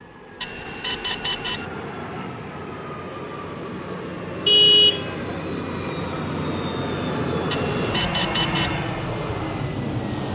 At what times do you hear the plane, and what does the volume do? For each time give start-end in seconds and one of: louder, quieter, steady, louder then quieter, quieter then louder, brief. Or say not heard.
0.0-10.3 louder.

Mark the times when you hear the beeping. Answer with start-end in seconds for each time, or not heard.
0.4-1.7, 7.5-8.8.